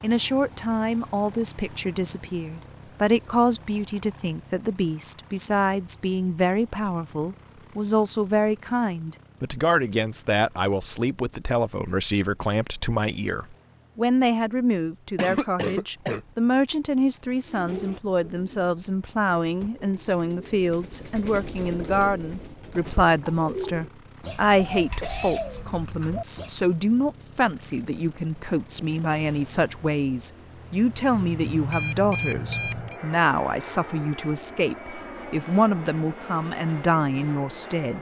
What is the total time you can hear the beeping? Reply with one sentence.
The beeping can be heard for 2 seconds in total.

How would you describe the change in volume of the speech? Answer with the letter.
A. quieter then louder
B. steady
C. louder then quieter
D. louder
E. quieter
B.